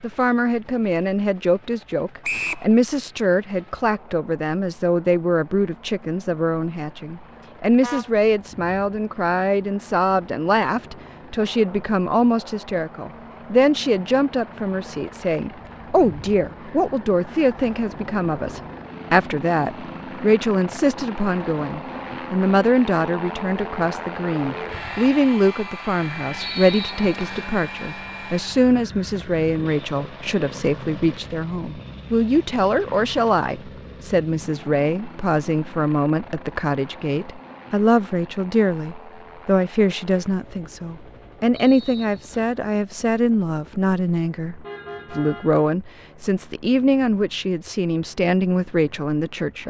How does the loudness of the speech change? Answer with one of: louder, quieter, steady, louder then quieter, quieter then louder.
steady.